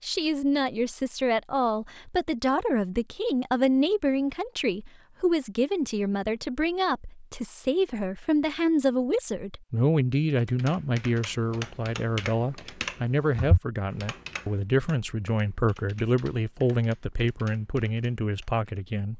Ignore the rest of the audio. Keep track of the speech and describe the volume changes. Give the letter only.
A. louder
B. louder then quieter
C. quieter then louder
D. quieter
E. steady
E.